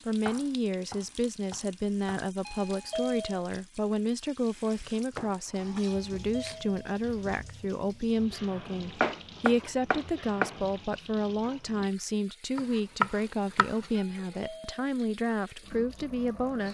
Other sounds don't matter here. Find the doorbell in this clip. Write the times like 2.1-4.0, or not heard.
2.5-3.5, 5.8-6.8, 13.9-14.8.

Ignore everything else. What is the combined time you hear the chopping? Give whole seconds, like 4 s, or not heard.
7 s.